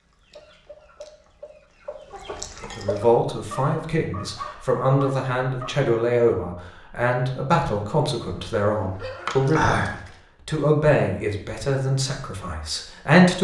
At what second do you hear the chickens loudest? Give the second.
10 s.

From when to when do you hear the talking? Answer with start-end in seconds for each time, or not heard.
2.6-13.3.